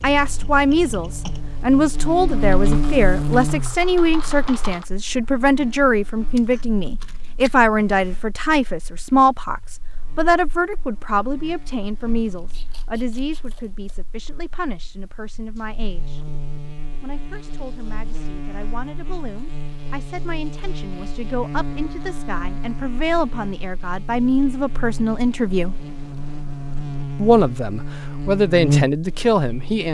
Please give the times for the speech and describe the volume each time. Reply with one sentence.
You can hear the speech from 0.0 to 16.2 s, getting quieter; from 17.0 to 25.8 s, getting louder; and briefly from 27.1 to 29.8 s.